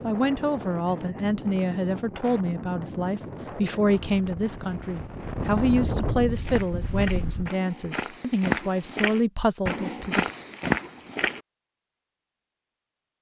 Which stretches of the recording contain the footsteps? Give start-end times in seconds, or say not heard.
6.3-11.4.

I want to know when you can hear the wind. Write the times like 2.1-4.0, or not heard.
0.0-7.5.